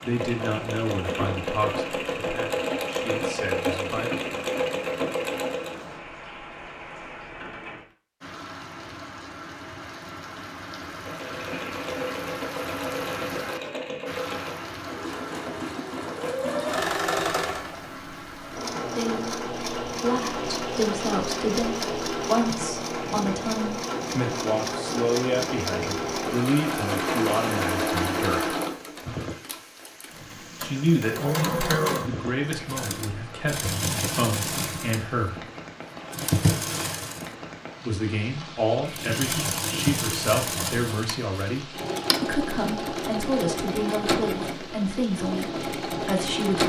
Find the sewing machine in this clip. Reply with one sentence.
The sewing machine can be heard from 0.0 to 5.8 s, from 11.0 to 37.4 s and from 38.9 to 46.6 s.